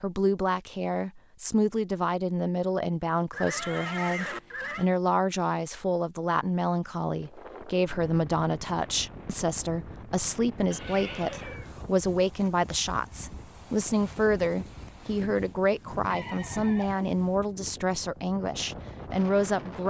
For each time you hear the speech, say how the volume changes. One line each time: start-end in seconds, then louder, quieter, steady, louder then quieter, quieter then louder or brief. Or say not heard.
0.0-19.8 steady.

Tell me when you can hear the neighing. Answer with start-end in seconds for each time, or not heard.
3.3-4.9, 10.7-11.7, 16.1-17.2.